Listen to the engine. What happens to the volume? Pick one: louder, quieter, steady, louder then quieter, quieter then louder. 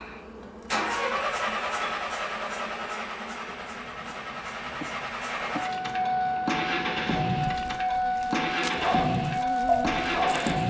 quieter then louder.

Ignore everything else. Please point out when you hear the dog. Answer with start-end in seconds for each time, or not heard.
8.8-10.6.